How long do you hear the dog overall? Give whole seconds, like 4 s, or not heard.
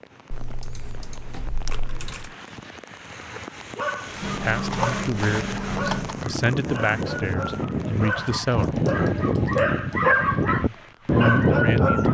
9 s.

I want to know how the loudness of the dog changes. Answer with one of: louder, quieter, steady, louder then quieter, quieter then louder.
louder.